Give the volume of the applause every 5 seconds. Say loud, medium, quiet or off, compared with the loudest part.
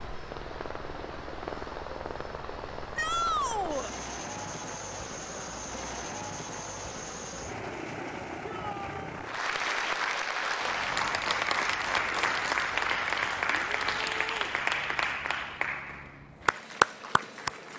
quiet, medium, loud, loud.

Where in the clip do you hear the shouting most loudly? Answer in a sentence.
The volume of the shouting peaks at 3 seconds.